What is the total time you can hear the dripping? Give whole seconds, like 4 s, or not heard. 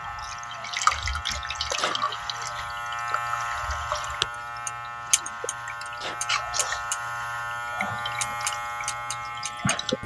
10 s.